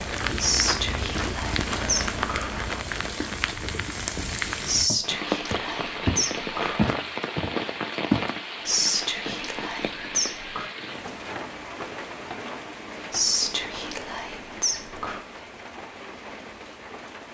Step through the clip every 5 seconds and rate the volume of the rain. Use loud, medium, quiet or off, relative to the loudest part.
loud, loud, medium, medium.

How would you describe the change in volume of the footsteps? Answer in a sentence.
The loudness of the footsteps goes down, then up.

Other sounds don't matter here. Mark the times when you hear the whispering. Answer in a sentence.
You can hear the whispering from 0.3 to 2.6 s, from 4.7 to 7.0 s, from 8.7 to 10.7 s and from 13.1 to 15.2 s.